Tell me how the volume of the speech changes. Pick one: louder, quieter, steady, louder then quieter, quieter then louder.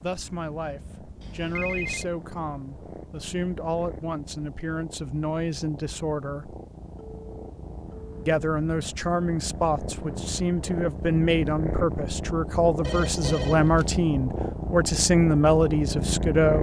louder.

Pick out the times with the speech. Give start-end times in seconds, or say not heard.
0.0-6.5, 8.2-16.5.